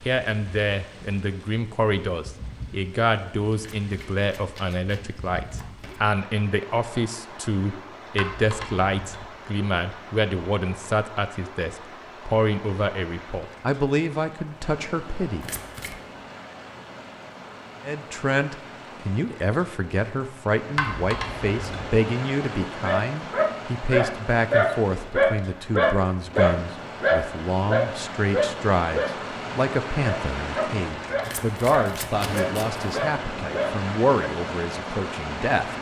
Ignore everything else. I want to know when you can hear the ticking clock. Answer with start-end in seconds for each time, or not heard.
not heard.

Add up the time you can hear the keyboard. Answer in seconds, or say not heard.
2 s.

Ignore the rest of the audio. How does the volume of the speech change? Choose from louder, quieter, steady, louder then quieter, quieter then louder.
steady.